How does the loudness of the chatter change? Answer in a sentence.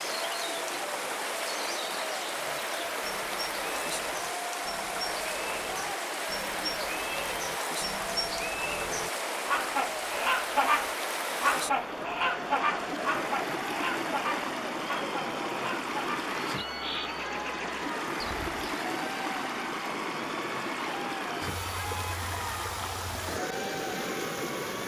The volume of the chatter stays about the same.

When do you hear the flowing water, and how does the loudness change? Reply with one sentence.
You can hear the flowing water from 0.0 to 24.8 s, at a steady volume.